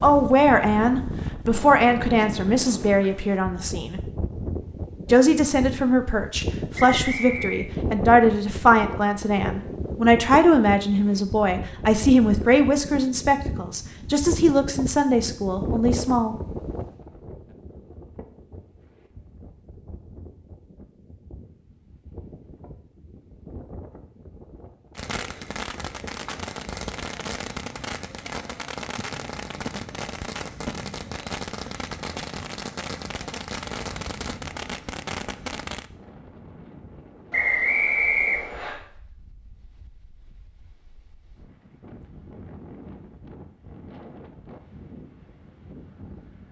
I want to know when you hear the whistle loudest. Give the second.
38 s.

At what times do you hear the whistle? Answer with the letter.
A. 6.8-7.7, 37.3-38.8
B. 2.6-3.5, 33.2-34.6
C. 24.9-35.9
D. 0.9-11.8
A.